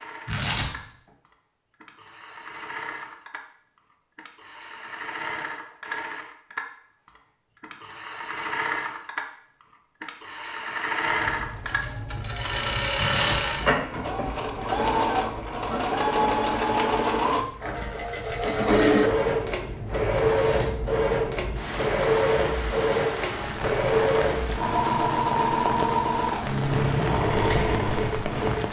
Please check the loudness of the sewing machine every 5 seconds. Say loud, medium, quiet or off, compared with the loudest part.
quiet, medium, loud, loud, loud, loud.